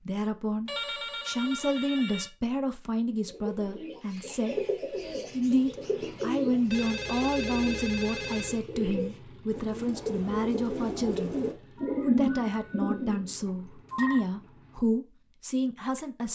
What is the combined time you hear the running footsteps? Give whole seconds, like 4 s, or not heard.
not heard.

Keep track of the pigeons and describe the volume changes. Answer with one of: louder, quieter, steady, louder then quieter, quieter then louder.
louder.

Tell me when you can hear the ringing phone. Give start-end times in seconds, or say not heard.
0.7-2.3, 6.7-8.6, 13.4-14.2.